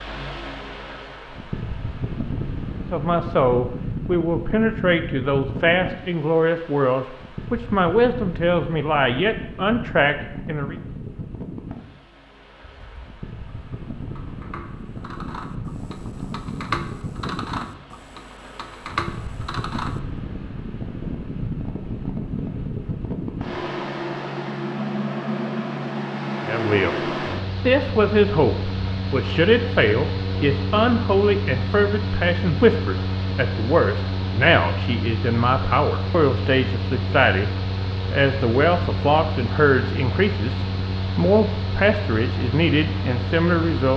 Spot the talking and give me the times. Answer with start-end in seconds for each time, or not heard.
2.8-10.8, 26.4-37.5, 38.1-43.9.